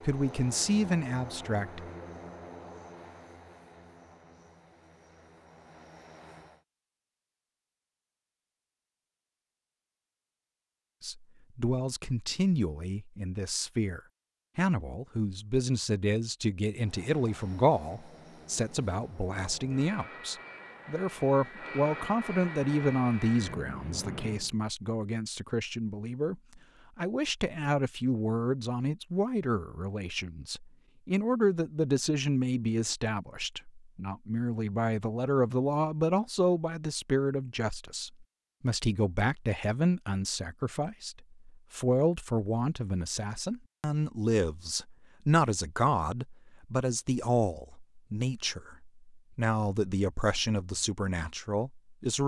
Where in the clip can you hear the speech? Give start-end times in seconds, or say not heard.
0.0-1.8, 11.0-52.2.